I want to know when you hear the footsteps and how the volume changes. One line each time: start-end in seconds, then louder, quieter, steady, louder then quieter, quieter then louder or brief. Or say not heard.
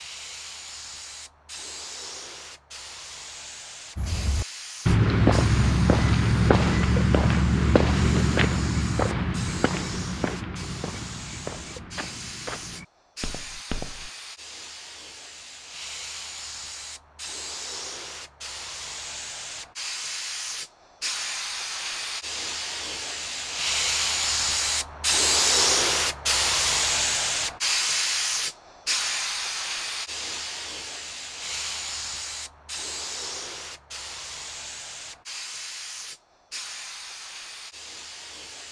4.0-14.1 quieter.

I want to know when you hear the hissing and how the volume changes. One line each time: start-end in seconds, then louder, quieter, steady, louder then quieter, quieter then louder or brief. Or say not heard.
0.0-38.6 louder then quieter.